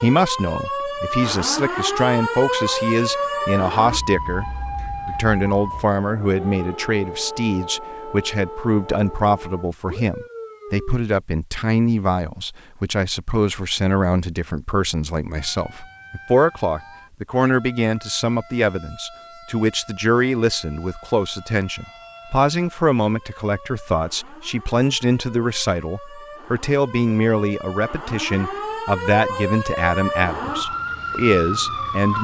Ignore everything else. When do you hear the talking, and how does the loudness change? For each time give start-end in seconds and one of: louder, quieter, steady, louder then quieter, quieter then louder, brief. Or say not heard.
0.0-32.1 steady.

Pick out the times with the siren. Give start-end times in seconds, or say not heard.
0.0-11.0, 15.3-32.1.